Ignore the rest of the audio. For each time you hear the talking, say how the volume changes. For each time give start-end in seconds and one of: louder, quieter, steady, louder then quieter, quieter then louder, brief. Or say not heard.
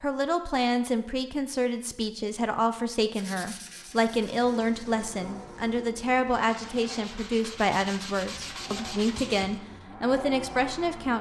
0.0-11.1 steady.